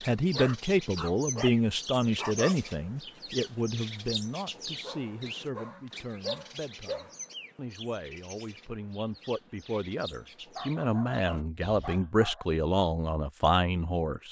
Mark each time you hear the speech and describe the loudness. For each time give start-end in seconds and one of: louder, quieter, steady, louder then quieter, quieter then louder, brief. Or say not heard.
0.0-14.2 quieter then louder.